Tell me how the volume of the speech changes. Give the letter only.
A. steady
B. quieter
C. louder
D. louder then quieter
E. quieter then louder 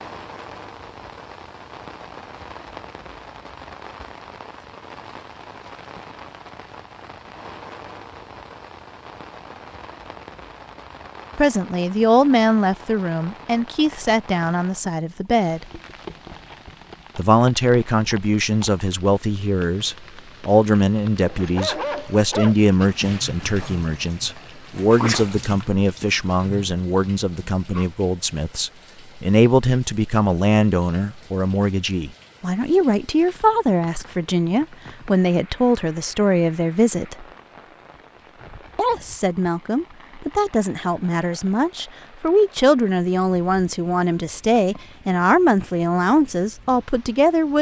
A.